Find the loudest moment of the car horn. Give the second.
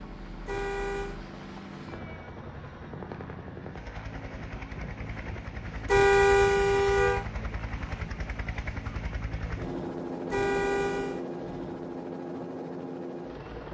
6 s.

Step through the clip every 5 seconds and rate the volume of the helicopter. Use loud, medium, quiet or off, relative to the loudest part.
medium, loud, loud.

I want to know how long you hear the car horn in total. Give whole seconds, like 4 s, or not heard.
3 s.